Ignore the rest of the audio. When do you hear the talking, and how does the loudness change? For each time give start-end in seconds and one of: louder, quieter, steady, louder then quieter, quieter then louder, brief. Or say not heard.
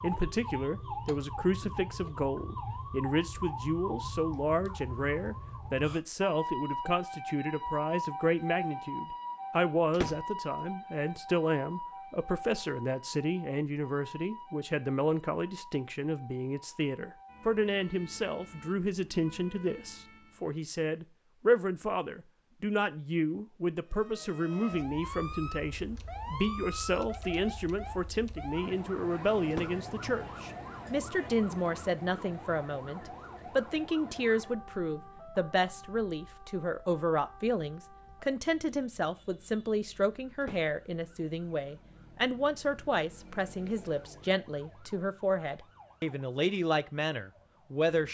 0.0-48.0 steady.